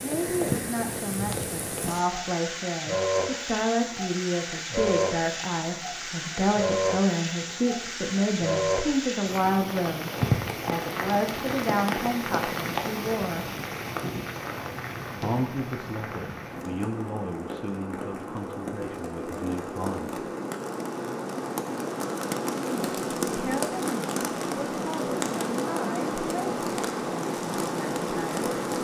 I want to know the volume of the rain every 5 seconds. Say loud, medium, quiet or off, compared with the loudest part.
loud, loud, loud, medium, loud, loud.